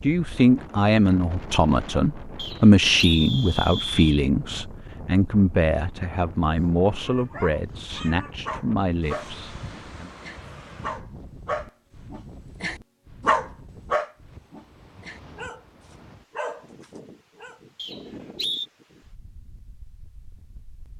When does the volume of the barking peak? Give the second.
13 s.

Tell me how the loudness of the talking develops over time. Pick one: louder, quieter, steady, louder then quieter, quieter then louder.
quieter.